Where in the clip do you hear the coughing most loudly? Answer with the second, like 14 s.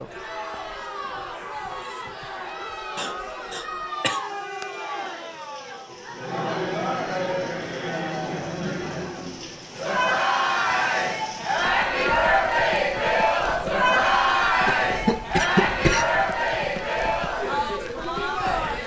16 s.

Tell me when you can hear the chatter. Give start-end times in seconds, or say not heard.
0.1-18.8.